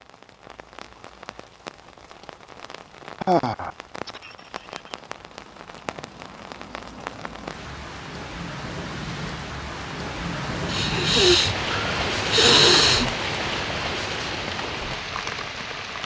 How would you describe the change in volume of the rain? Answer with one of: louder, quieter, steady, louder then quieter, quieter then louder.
louder.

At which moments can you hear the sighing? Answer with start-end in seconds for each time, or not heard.
3.2-5.0, 10.7-13.1.